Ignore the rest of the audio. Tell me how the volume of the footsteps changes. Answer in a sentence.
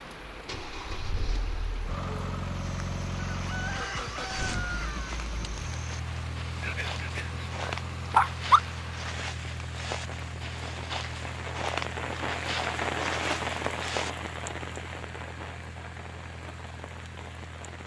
The loudness of the footsteps goes up.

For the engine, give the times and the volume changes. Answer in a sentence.
The engine can be heard from 0.0 to 17.8 s, getting quieter.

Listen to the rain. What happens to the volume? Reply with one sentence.
The volume of the rain goes up, then down.